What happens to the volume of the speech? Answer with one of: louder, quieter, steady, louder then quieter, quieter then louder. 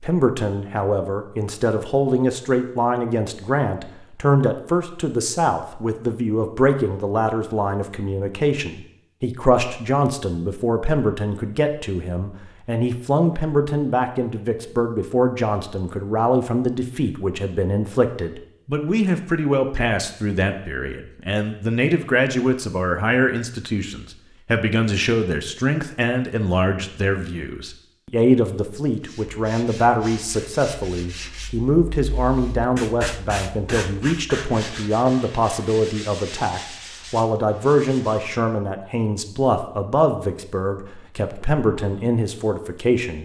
steady.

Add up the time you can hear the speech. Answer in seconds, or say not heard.
43 s.